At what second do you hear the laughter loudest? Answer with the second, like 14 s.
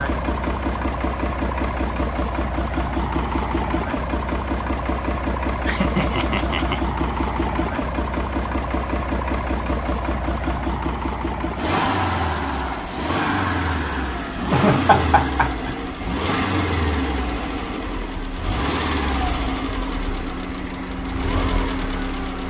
15 s.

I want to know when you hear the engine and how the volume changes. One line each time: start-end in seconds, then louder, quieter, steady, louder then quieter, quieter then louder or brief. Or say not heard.
0.0-22.4 steady.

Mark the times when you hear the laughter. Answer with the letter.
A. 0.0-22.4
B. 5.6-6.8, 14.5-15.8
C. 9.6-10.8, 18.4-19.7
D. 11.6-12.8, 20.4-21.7
B.